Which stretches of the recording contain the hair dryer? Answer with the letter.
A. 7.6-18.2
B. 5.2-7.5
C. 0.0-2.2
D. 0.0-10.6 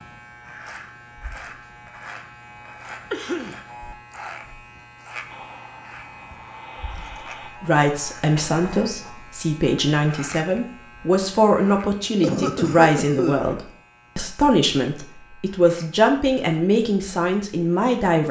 B.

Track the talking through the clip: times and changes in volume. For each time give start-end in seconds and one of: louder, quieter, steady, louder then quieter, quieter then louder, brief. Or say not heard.
7.6-18.2 steady.